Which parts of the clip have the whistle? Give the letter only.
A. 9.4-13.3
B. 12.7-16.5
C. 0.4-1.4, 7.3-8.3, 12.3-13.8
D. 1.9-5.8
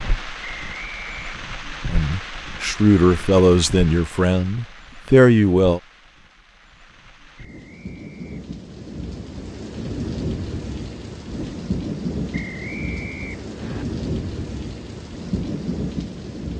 C.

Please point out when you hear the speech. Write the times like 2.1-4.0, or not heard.
1.9-5.8.